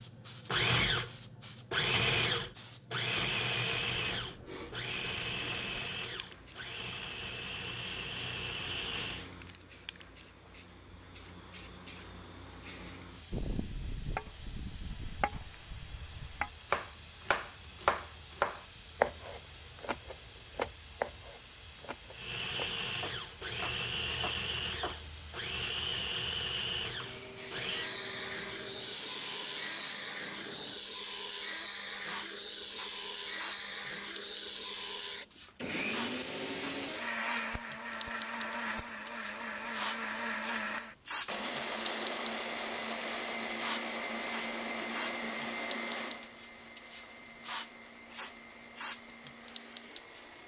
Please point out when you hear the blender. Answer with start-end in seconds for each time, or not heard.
0.0-9.3, 22.1-50.4.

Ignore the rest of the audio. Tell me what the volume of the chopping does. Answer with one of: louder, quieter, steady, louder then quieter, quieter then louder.
louder then quieter.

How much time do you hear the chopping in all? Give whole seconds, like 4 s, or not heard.
12 s.